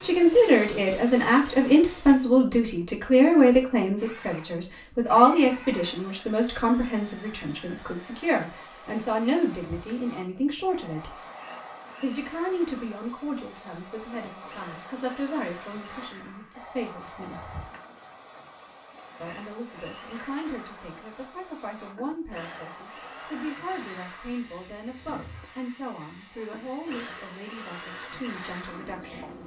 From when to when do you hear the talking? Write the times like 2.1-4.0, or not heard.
0.0-11.2, 12.0-17.5, 19.2-29.4.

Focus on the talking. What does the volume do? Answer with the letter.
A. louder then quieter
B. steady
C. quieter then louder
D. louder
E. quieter
E.